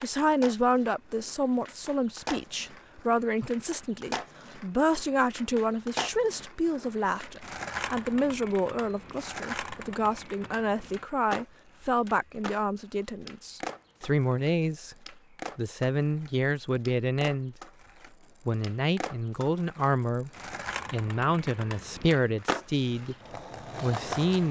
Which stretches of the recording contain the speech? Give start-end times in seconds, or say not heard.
0.0-14.9, 15.6-17.6, 18.4-20.3, 20.9-23.1, 23.8-24.4.